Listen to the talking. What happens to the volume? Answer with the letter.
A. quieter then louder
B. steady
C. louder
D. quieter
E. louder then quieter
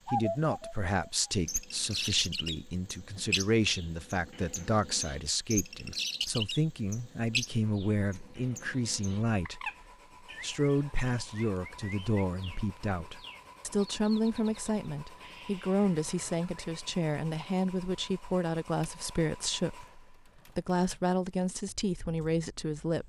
B.